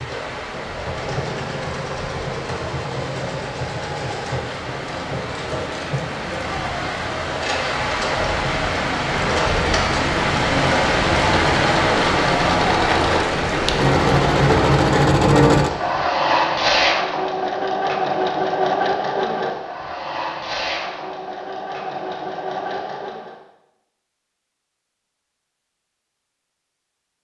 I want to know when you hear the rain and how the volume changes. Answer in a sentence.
You can hear the rain from 0.0 to 15.1 s, getting louder.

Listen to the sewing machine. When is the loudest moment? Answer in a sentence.
The volume of the sewing machine peaks at 15 seconds.